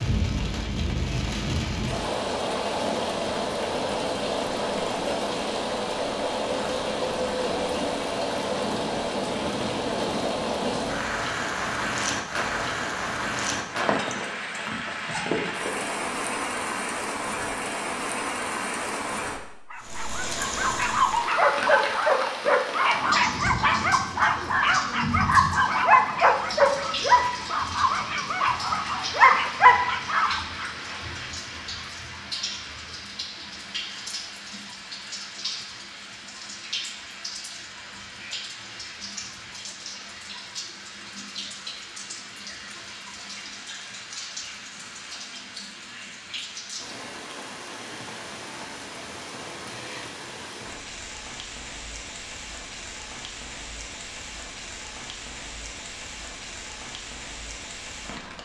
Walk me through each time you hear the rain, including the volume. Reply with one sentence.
You can hear the rain from 0.0 to 58.4 s, getting quieter.